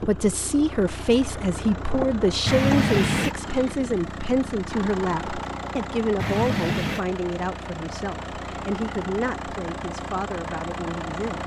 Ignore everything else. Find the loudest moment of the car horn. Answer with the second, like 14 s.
3 s.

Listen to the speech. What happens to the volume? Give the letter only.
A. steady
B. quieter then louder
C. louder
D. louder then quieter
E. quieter
E.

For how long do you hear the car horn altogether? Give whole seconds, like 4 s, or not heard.
2 s.